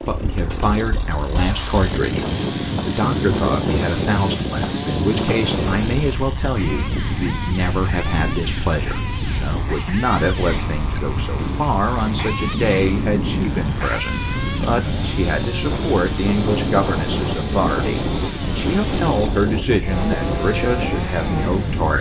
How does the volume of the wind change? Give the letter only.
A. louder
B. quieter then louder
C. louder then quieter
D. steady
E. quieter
D.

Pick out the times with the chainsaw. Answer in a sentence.
The chainsaw can be heard from 0.0 to 21.9 s.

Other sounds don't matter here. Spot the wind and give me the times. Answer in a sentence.
The wind can be heard from 0.0 to 21.9 s.